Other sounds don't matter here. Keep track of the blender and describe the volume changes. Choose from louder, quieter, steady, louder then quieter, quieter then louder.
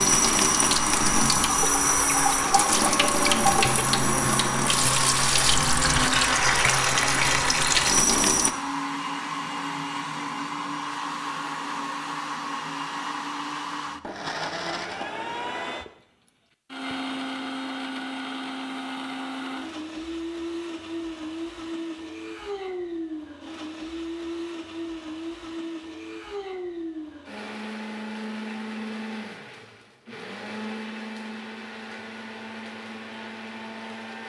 quieter.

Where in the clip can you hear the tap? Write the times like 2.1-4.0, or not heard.
0.0-8.5.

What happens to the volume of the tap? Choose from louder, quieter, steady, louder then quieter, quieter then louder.
steady.